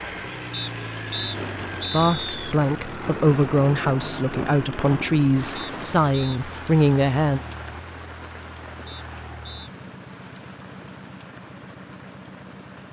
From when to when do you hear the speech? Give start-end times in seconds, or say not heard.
1.9-7.4.